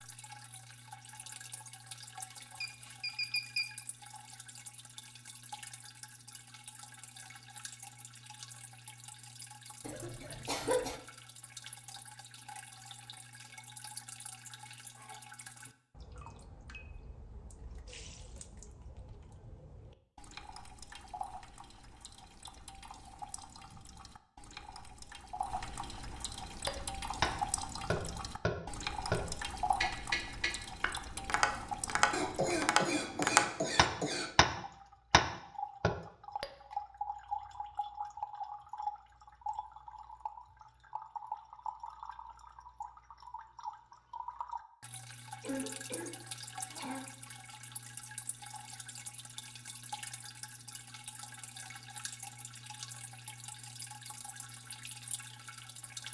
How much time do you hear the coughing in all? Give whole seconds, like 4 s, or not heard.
5 s.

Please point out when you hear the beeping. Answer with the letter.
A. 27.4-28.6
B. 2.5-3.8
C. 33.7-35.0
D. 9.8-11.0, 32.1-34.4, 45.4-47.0
B.